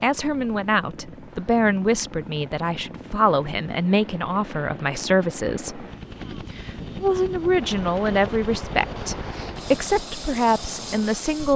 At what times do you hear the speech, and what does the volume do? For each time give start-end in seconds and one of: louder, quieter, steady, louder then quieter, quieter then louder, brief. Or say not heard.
0.0-11.5 steady.